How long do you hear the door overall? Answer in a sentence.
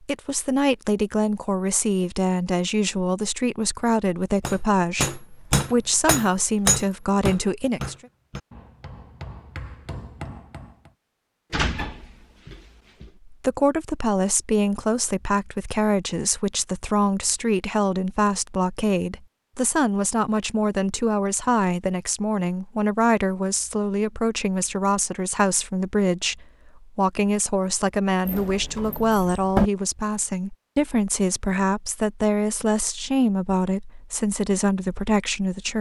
The door can be heard for 3 seconds in total.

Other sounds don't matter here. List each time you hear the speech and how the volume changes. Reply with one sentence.
The speech can be heard from 0.0 to 8.1 s, at a steady volume; and from 13.2 to 35.7 s, at a steady volume.